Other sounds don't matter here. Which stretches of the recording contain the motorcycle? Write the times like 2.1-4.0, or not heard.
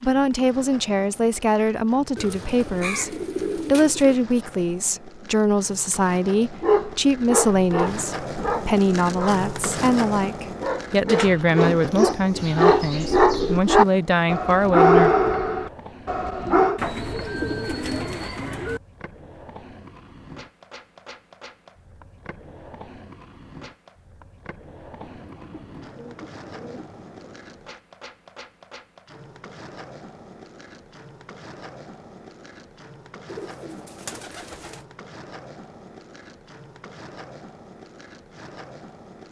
not heard.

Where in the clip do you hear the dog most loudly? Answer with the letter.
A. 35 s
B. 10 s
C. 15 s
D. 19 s
C.